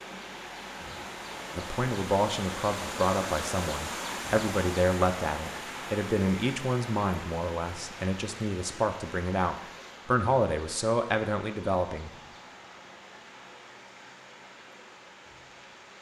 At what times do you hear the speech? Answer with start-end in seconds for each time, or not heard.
1.6-12.1.